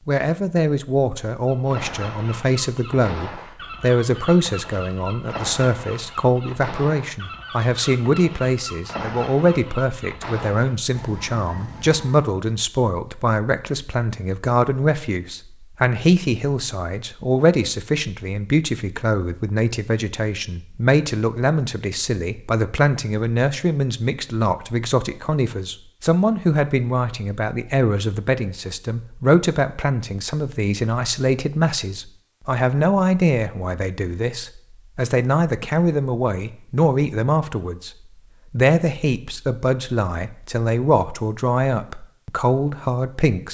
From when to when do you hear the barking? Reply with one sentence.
The barking can't be heard in this clip.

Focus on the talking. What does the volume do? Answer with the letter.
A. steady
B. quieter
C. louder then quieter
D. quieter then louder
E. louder
A.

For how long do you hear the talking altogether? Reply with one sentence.
You can hear the talking for 43 seconds altogether.